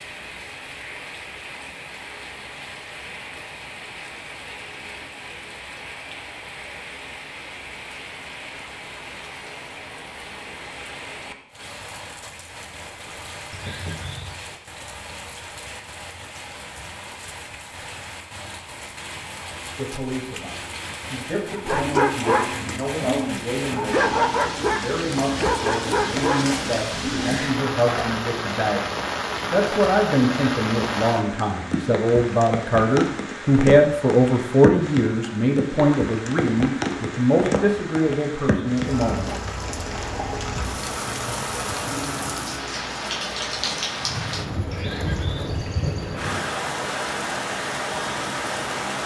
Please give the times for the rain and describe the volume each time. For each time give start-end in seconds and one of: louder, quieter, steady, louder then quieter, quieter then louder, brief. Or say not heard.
0.0-49.0 louder.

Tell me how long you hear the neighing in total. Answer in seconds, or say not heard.
3 s.